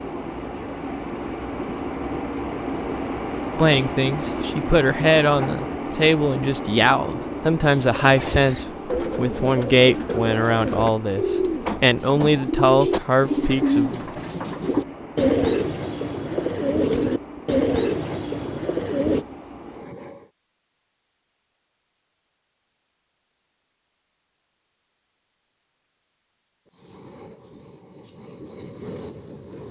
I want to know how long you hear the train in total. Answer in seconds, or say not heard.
23 s.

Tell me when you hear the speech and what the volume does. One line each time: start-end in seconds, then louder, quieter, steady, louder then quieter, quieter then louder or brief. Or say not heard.
3.5-14.1 steady.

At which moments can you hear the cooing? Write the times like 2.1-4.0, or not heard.
7.7-19.2.